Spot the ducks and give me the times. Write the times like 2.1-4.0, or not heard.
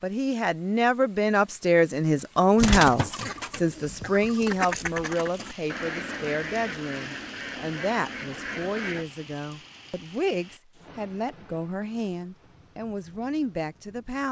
2.5-9.1.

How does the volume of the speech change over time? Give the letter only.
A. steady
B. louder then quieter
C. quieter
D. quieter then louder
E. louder
C.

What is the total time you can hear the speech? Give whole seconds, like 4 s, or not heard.
14 s.